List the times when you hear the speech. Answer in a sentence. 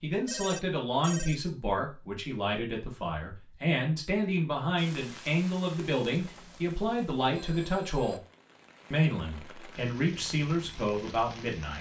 You can hear the speech from 0.0 to 8.2 s and from 8.9 to 11.7 s.